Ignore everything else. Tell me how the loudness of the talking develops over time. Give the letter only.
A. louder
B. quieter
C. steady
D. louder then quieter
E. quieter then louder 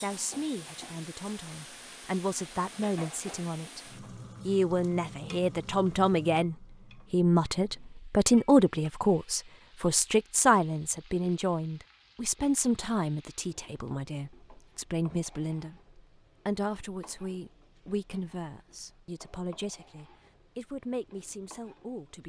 D.